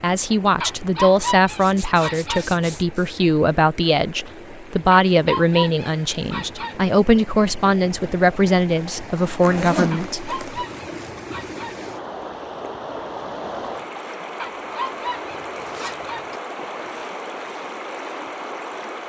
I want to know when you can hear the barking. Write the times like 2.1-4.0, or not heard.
0.6-2.5, 4.9-6.8, 9.9-11.8, 14.3-16.2.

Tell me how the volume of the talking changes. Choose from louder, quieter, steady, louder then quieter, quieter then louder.
steady.